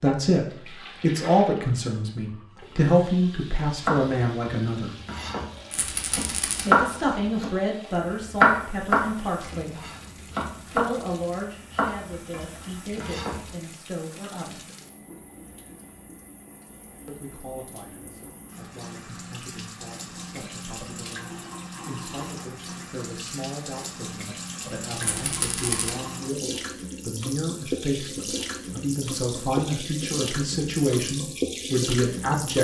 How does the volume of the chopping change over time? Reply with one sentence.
The loudness of the chopping goes up, then down.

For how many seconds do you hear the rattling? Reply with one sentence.
You can hear the rattling for 2 seconds altogether.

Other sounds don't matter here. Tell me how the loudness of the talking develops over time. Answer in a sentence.
The loudness of the talking goes down, then up.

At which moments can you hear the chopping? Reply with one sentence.
You can hear the chopping from 3.8 to 13.6 s.